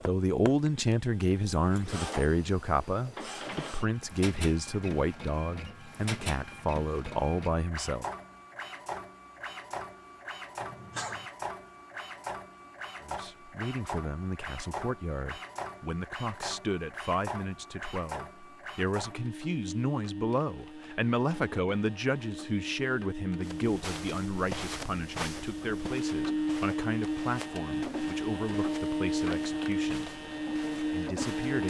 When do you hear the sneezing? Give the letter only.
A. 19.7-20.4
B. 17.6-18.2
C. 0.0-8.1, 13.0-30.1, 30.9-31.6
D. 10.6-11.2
D.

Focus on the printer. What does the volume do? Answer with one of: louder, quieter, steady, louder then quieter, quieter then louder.
louder.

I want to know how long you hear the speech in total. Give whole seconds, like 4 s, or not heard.
26 s.